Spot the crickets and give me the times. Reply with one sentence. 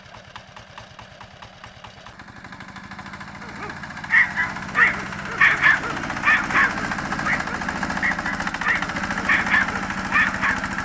The crickets can't be heard in this clip.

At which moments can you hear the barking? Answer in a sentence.
You can hear the barking from 3.6 to 10.6 s.